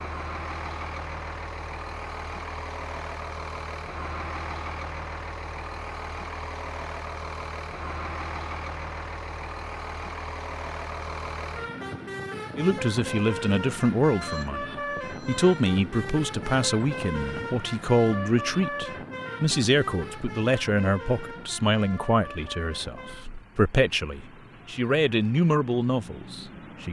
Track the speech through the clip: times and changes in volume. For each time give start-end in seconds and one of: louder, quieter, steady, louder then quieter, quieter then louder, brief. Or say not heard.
12.6-26.8 steady.